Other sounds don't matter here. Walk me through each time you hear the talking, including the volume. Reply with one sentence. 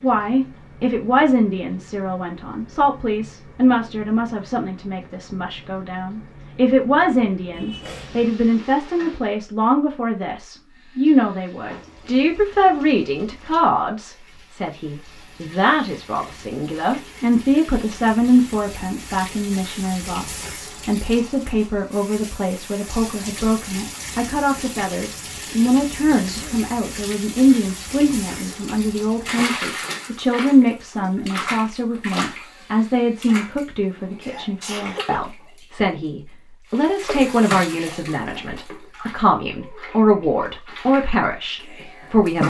You can hear the talking from 0.0 to 42.4 s, at a steady volume.